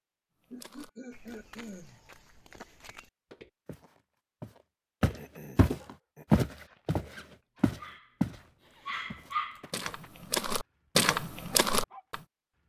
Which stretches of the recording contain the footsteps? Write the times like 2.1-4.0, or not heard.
0.5-8.4, 9.1-12.2.